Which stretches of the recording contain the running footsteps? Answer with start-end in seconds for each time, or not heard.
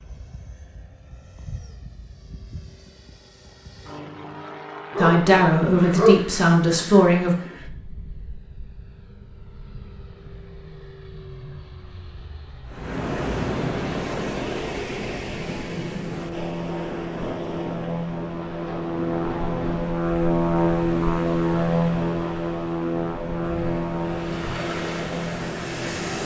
not heard.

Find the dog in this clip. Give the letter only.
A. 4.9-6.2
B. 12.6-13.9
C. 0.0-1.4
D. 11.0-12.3
A.